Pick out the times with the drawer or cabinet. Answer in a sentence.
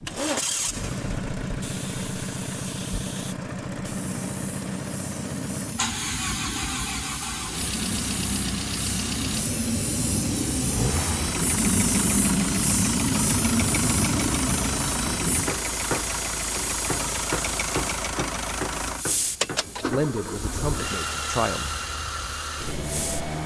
You can't hear the drawer or cabinet here.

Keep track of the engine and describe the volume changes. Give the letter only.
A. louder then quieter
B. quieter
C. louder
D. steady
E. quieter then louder
D.